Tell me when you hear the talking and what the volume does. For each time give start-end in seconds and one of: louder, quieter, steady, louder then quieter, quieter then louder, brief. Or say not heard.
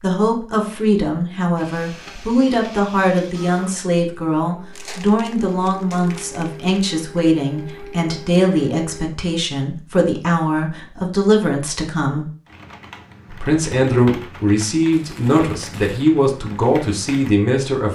0.0-12.2 steady
13.3-17.8 steady.